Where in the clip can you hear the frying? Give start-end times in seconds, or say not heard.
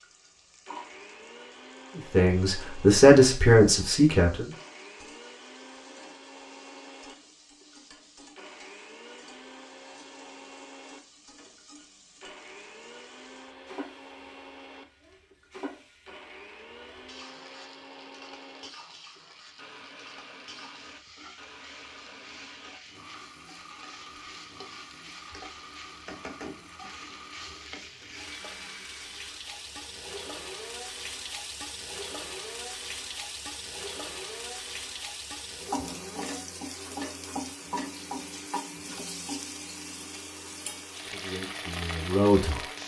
0.0-42.8.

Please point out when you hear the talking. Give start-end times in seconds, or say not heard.
1.9-4.5, 41.0-42.6.